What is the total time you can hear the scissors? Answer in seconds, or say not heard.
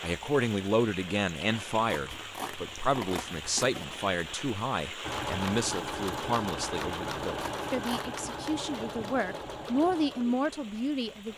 3 s.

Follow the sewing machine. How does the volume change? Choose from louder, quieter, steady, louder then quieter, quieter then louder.
quieter.